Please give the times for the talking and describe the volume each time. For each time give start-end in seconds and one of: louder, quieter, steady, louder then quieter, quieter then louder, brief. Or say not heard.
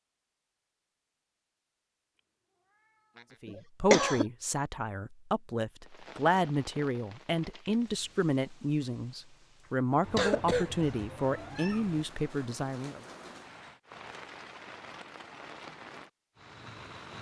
3.4-13.0 steady.